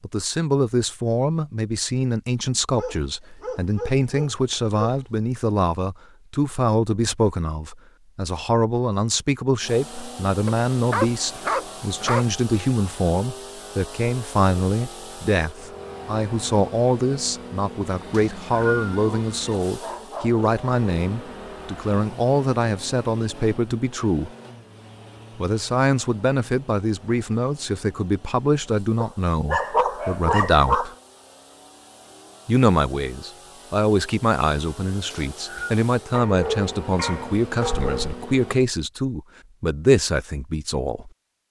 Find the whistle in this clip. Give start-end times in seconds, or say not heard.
18.1-18.9, 35.1-35.8.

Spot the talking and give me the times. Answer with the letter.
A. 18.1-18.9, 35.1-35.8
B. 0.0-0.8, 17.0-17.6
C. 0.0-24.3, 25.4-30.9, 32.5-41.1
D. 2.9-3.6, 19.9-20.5
C.